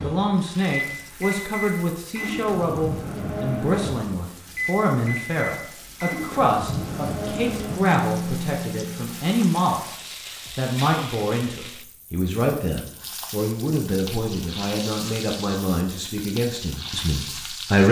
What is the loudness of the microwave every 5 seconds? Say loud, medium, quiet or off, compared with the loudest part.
loud, loud, off, off.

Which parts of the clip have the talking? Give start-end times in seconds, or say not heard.
0.0-17.8.